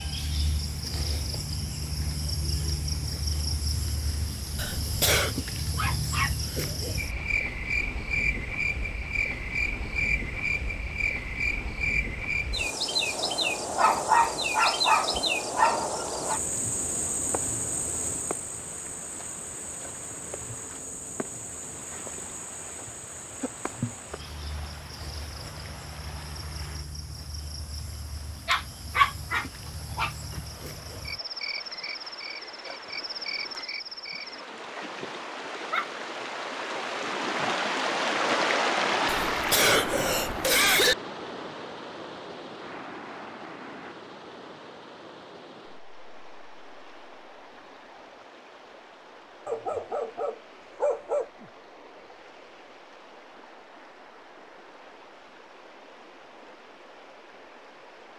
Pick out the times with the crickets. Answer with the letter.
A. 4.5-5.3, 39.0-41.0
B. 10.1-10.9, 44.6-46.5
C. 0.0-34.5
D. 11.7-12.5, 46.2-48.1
C.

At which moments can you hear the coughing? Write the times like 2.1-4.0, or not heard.
4.5-5.3, 39.0-41.0.